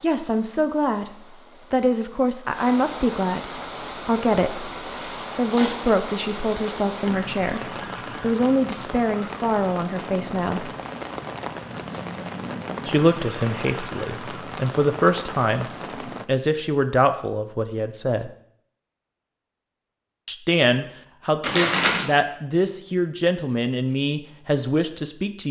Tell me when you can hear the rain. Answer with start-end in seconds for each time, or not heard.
0.0-16.2.